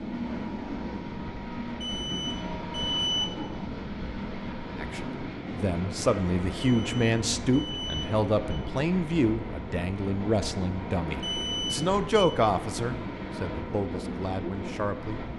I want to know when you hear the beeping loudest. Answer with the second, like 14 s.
3 s.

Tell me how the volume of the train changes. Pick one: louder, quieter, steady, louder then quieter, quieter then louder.
steady.